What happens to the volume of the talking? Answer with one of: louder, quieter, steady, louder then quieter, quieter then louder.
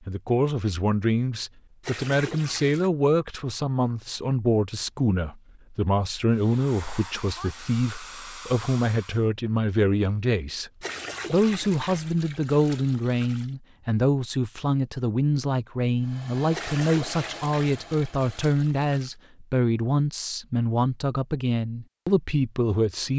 steady.